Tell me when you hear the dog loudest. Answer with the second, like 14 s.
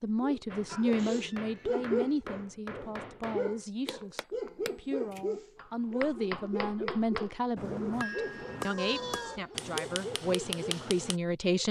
2 s.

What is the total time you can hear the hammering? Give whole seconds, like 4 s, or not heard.
11 s.